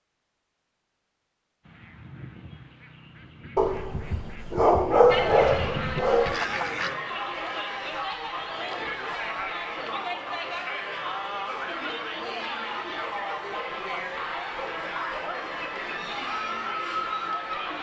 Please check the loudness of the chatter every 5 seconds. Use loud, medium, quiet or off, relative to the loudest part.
off, loud, loud, loud.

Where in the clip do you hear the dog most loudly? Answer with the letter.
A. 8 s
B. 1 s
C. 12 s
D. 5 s
D.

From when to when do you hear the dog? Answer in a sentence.
You can hear the dog from 3.5 to 6.4 s.